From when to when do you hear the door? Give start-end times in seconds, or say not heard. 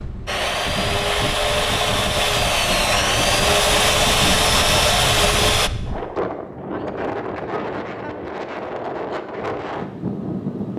not heard.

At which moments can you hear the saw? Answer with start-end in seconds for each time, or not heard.
0.2-5.7.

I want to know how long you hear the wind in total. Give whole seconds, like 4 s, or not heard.
11 s.